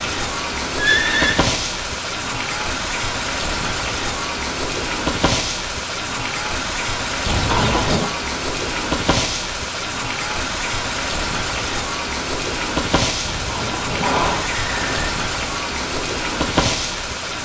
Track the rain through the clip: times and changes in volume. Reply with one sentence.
The rain can be heard from 0.0 to 17.4 s, at a steady volume.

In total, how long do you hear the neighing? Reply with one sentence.
You can hear the neighing for 3 seconds altogether.